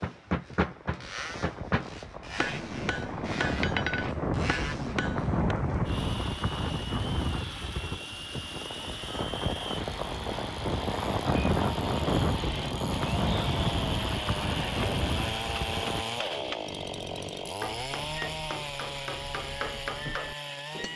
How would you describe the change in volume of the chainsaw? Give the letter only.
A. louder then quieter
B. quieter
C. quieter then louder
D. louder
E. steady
D.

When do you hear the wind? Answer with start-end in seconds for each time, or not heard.
0.0-16.1.